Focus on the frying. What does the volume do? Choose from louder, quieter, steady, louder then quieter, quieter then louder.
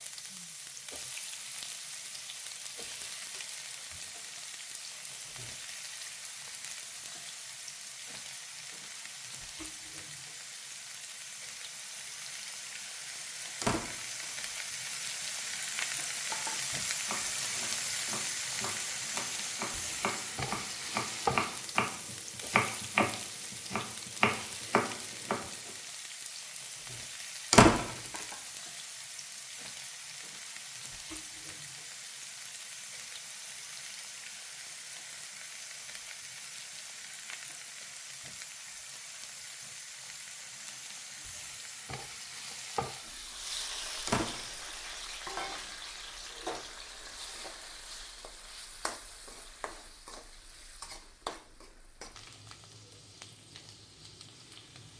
louder then quieter.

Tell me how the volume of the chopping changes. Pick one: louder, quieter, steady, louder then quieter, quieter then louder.
louder.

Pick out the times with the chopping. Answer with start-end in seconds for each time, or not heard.
16.3-25.7.